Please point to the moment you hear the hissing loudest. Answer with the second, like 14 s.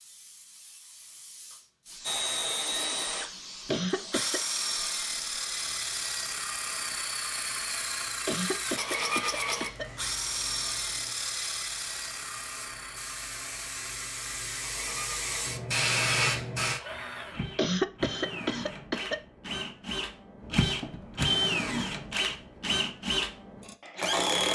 16 s.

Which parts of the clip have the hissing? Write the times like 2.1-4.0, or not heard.
0.0-16.8.